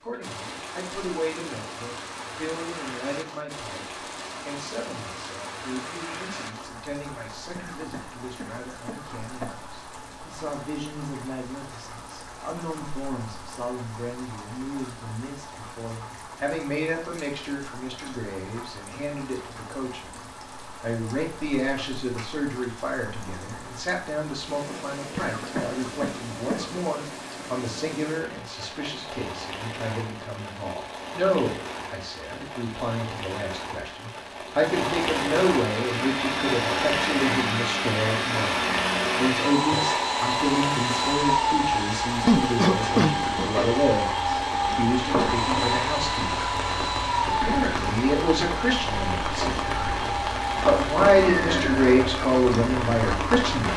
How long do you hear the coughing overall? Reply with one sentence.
The coughing can be heard for 5 seconds in total.